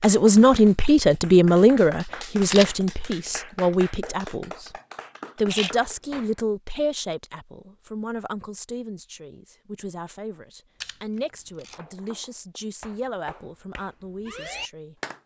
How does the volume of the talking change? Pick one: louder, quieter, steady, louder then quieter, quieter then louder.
quieter.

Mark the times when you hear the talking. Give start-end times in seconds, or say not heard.
0.0-4.7, 5.3-14.9.